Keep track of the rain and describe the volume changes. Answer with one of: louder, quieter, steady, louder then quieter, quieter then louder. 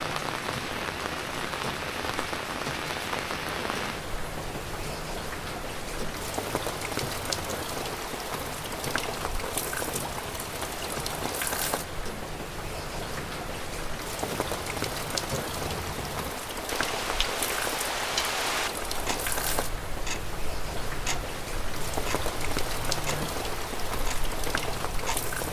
steady.